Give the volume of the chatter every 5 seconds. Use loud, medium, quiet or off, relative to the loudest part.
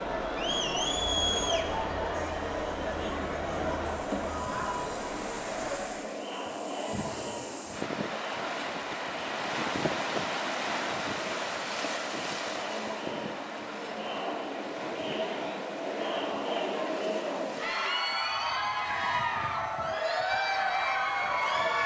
loud, medium, medium, loud, loud.